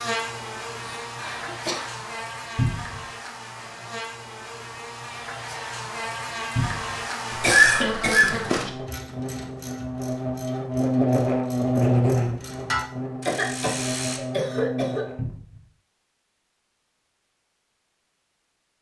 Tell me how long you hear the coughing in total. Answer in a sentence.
You can hear the coughing for 4 seconds altogether.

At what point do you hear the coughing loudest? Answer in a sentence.
The loudest moment of the coughing is at 8 seconds.